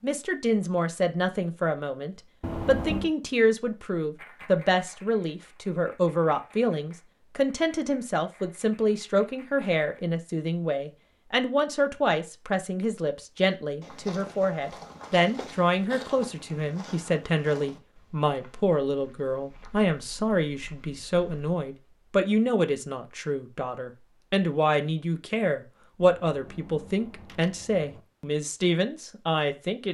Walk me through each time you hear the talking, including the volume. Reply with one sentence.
The talking can be heard from 0.0 to 29.8 s, at a steady volume.